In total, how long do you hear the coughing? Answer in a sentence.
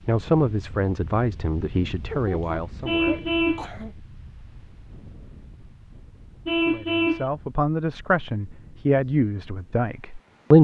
You can hear the coughing for 2 seconds altogether.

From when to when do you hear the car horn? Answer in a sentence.
You can hear the car horn from 2.9 to 3.6 s and from 6.5 to 7.2 s.